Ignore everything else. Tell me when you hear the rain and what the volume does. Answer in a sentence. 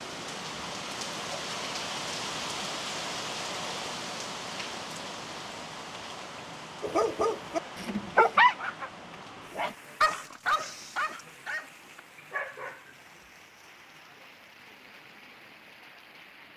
You can hear the rain from 0.0 to 16.5 s, getting quieter.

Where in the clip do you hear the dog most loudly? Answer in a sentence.
The loudest moment of the dog is at 8 seconds.